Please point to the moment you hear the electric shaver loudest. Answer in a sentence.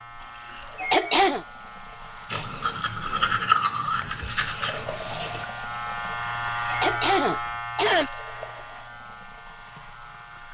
The volume of the electric shaver peaks at 7 seconds.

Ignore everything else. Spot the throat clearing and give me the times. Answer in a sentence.
The throat clearing can be heard from 0.2 to 1.4 s and from 6.1 to 8.1 s.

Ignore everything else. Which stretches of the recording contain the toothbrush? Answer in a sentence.
You can hear the toothbrush from 2.3 to 5.5 s.